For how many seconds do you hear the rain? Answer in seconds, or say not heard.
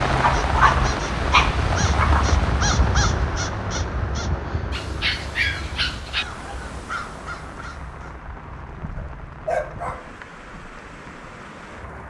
12 s.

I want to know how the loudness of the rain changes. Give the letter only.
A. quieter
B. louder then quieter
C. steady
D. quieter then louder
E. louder
A.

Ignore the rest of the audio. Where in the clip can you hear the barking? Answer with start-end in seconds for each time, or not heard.
0.1-2.2, 4.7-6.2, 8.9-10.1.